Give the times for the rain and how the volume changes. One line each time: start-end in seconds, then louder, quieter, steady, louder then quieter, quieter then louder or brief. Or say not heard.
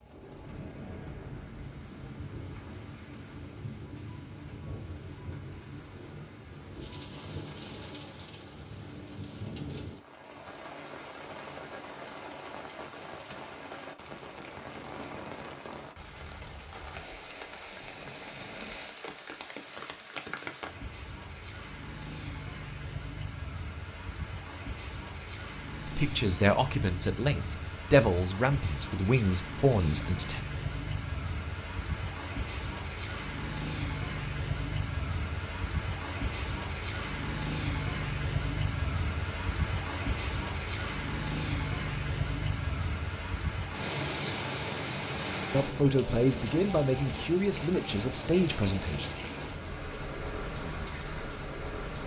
0.0-52.0 louder.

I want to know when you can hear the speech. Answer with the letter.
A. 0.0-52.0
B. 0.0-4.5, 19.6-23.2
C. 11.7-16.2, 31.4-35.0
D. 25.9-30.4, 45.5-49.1
D.